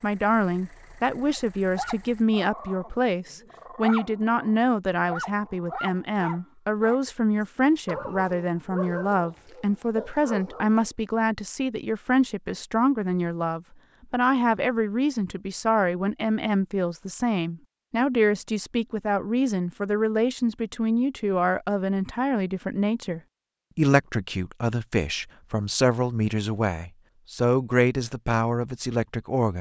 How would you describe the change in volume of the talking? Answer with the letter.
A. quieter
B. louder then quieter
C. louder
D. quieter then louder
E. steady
E.